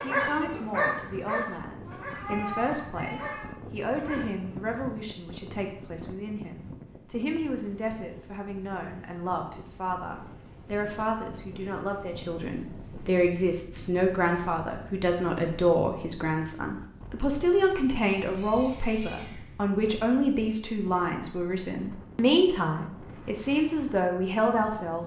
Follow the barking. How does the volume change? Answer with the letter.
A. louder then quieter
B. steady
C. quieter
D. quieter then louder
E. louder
C.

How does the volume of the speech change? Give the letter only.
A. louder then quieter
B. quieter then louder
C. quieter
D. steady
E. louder
E.